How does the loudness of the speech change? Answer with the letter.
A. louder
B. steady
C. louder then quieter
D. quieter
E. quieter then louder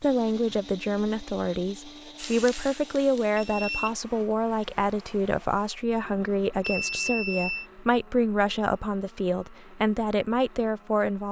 B.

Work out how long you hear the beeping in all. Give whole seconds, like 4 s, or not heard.
2 s.